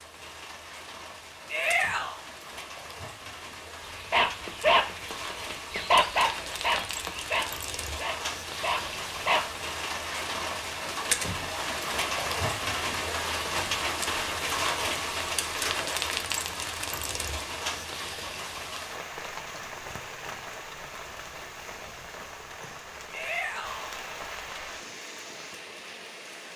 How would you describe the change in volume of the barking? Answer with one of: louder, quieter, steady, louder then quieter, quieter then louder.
quieter.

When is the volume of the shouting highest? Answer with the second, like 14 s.
2 s.